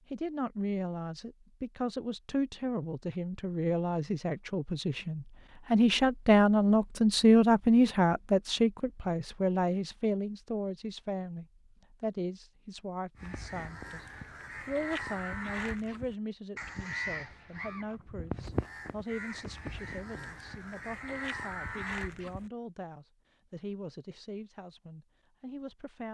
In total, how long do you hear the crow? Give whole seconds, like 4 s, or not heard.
9 s.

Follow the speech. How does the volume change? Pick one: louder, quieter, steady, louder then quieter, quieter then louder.
louder then quieter.